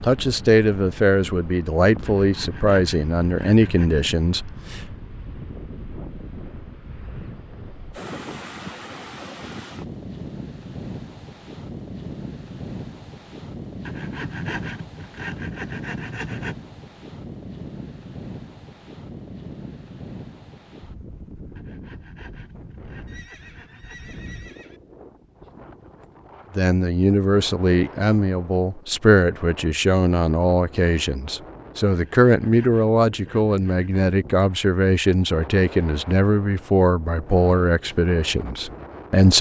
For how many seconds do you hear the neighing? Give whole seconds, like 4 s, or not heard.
2 s.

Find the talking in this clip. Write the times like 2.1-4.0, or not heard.
0.0-4.8, 26.6-39.3.